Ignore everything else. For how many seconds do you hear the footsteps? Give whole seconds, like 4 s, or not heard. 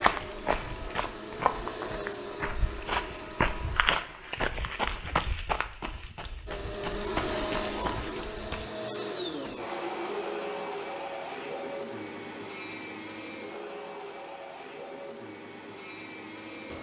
9 s.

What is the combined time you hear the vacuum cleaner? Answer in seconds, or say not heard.
14 s.